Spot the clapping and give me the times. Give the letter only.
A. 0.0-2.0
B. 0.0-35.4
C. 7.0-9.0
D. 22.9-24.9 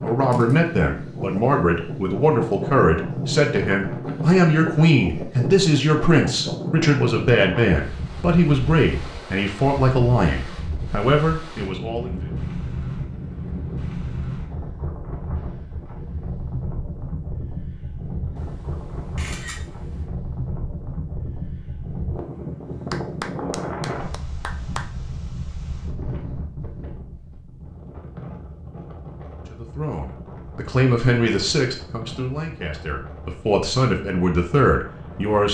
D.